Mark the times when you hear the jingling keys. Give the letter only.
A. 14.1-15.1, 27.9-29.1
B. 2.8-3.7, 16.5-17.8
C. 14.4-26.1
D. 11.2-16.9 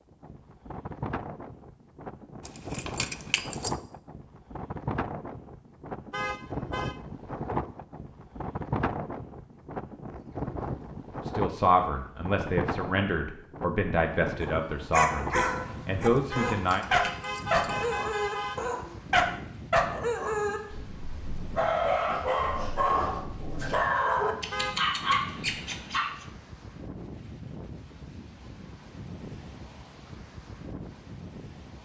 B.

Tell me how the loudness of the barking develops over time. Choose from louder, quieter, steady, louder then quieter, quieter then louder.
steady.